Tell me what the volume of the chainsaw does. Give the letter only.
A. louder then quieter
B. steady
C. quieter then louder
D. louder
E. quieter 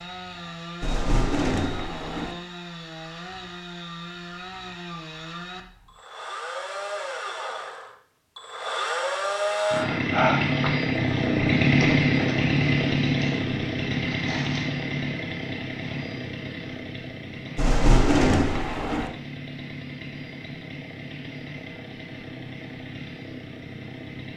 A.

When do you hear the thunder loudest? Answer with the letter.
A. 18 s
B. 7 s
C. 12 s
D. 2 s
A.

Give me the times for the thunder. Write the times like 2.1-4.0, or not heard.
0.8-2.4, 17.6-19.1.